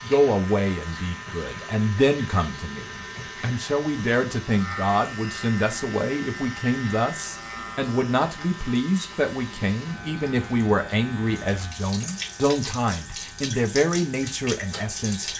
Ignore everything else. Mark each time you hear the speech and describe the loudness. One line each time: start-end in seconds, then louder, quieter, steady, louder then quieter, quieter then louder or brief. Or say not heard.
0.0-15.3 steady.